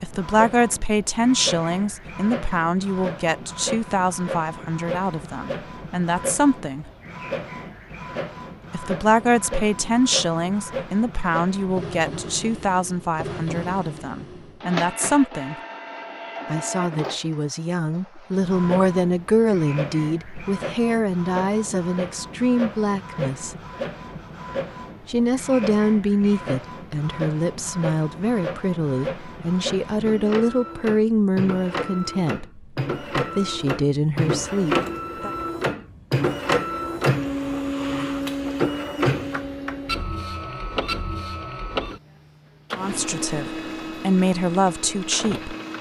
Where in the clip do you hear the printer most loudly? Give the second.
37 s.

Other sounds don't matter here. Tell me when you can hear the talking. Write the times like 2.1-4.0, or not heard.
0.0-6.8, 8.7-15.6, 16.5-23.6, 25.1-35.3, 42.8-45.5.